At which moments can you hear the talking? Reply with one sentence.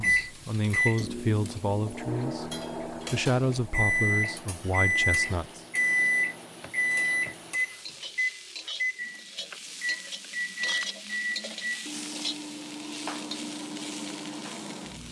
The talking can be heard from 0.0 to 5.6 s.